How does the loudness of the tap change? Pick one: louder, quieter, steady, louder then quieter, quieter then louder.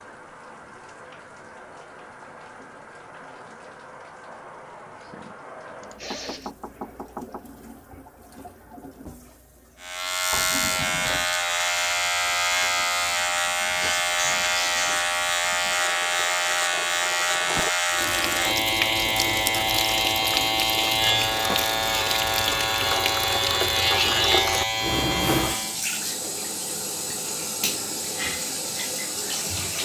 louder.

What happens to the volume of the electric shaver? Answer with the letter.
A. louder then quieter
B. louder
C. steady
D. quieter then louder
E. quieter
C.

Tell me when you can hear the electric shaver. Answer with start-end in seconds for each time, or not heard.
9.8-25.8.